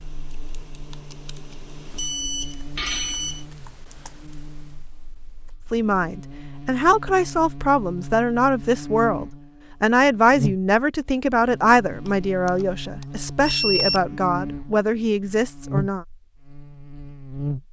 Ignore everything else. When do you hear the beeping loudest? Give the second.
14 s.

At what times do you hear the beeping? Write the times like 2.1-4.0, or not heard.
1.9-3.5, 12.1-14.0.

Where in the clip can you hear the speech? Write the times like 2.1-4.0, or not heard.
5.7-16.1.